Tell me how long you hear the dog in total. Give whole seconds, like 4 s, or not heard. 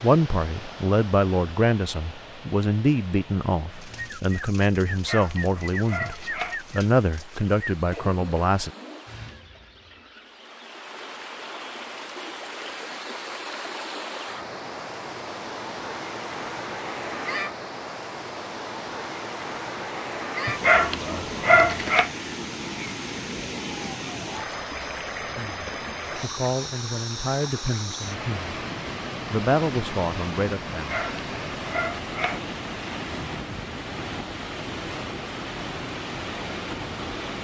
5 s.